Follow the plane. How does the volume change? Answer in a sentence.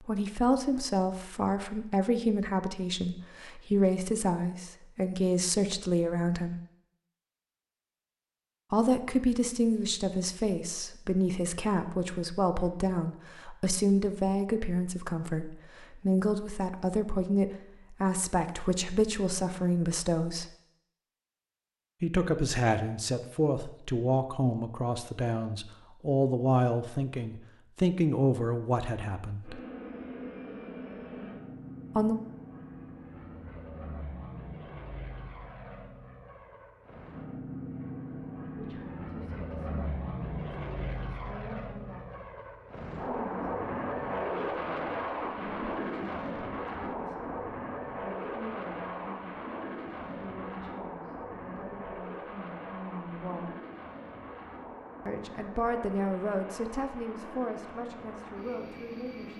The volume of the plane goes up, then down.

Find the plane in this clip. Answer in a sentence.
You can hear the plane from 29.4 to 59.3 s.